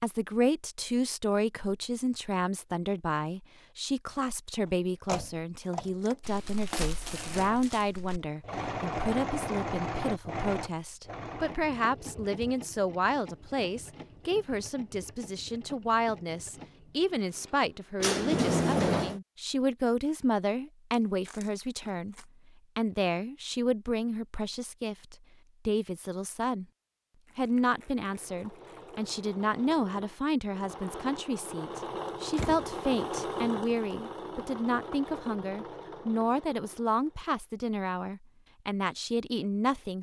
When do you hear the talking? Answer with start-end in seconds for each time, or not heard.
0.0-26.6, 27.4-39.9.